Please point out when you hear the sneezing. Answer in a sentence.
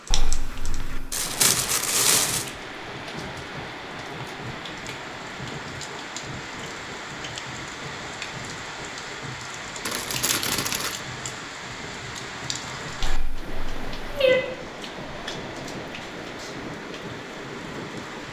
The sneezing can't be heard in this clip.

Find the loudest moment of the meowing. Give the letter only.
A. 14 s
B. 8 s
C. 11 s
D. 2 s
A.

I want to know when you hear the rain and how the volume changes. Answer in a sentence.
The rain can be heard from 0.0 to 18.2 s, at a steady volume.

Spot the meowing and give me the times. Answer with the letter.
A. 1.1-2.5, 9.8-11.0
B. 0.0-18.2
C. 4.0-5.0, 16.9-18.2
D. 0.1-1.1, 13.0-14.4
D.